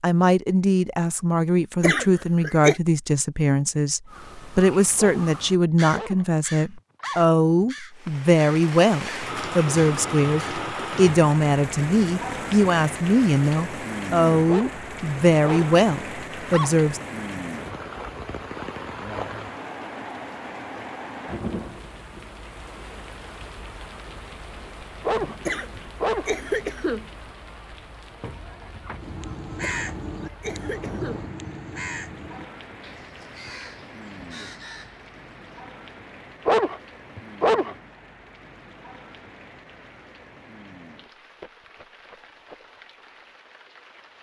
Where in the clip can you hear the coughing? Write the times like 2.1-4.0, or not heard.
1.8-2.8, 25.4-27.1, 29.6-31.3.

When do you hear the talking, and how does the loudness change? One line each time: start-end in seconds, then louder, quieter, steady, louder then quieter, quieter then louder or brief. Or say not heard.
0.0-17.0 steady.